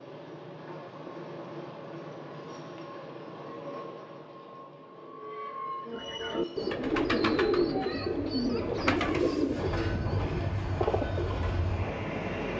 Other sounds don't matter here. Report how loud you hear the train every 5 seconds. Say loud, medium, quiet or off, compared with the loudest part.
medium, medium, loud.